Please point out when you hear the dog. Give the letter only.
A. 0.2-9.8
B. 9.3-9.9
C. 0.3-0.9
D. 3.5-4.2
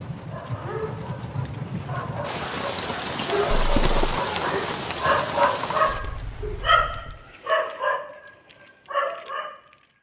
A.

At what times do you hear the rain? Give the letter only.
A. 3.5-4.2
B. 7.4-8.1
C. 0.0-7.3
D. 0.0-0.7
C.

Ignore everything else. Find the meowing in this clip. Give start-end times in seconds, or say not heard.
3.5-4.2.